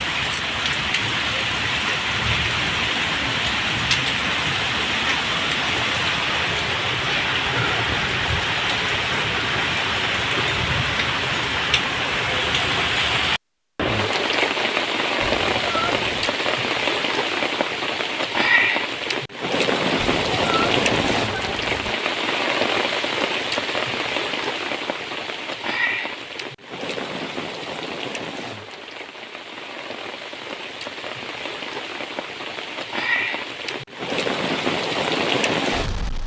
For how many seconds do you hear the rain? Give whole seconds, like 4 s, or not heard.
36 s.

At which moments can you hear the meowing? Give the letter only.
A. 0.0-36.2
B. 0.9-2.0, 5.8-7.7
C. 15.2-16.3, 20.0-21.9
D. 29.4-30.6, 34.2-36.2
C.